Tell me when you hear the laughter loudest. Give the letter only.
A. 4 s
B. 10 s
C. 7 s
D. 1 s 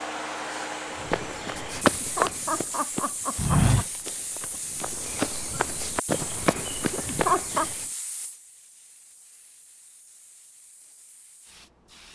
C.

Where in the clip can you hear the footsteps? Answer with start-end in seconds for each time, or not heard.
0.9-7.8.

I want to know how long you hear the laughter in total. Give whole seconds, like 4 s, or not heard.
3 s.